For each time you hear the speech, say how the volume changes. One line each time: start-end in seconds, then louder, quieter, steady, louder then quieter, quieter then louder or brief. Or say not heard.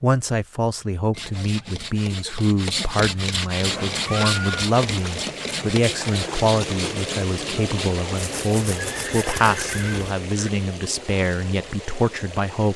0.0-12.7 steady.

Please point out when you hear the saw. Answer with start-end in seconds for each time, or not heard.
1.1-9.9.